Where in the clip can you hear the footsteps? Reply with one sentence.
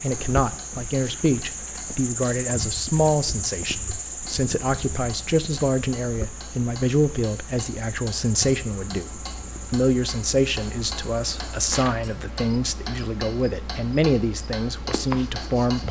The footsteps can't be heard in this clip.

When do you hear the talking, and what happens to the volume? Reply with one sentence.
The talking can be heard from 0.0 to 15.8 s, at a steady volume.